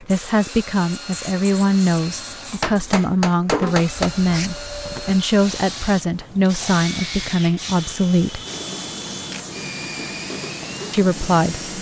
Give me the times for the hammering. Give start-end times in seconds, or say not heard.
2.1-4.1.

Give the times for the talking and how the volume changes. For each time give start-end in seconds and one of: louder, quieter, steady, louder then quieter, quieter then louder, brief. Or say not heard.
0.0-8.4 steady
10.9-11.7 brief.